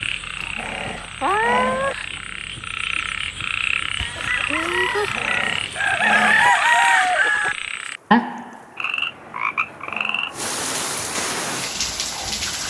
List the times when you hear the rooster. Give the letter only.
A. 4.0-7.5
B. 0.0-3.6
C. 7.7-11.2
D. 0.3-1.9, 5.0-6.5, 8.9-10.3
A.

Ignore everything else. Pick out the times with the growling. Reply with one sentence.
The growling can be heard from 0.3 to 1.9 s, from 5.0 to 6.5 s and from 8.9 to 10.3 s.